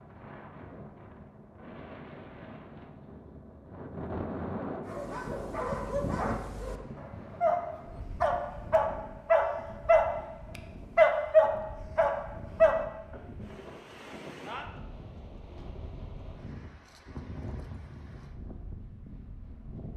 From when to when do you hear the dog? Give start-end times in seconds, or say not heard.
4.8-13.2.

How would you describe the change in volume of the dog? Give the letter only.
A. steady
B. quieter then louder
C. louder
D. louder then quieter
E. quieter
C.